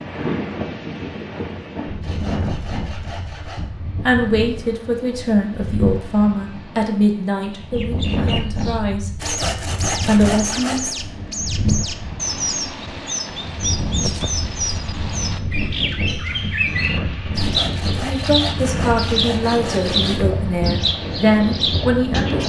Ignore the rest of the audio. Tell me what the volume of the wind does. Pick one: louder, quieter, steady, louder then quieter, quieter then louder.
steady.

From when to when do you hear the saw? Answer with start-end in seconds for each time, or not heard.
2.0-3.6, 9.2-10.9, 17.3-20.3.